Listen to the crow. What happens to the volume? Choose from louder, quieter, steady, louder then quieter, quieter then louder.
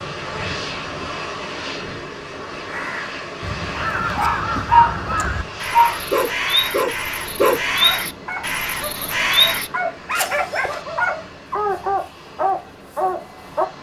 louder.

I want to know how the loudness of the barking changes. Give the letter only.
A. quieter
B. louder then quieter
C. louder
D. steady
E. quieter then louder
E.